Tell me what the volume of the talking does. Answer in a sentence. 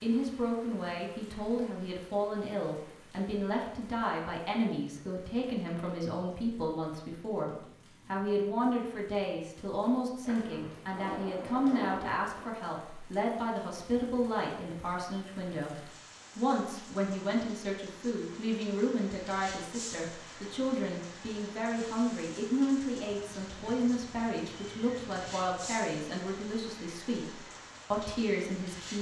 The loudness of the talking stays about the same.